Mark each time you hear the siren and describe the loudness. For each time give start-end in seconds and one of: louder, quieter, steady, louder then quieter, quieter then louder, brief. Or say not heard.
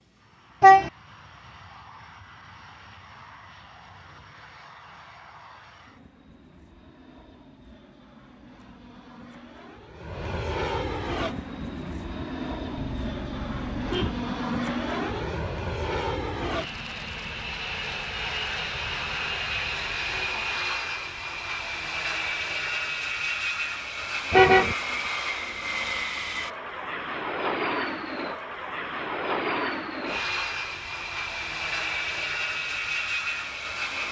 not heard.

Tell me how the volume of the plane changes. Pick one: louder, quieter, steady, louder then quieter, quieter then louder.
louder.